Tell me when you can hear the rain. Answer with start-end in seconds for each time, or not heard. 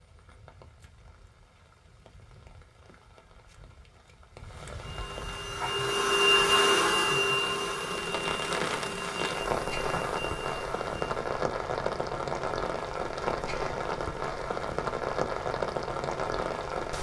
0.0-16.9.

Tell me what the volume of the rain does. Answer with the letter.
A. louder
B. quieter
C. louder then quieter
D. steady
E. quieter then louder
A.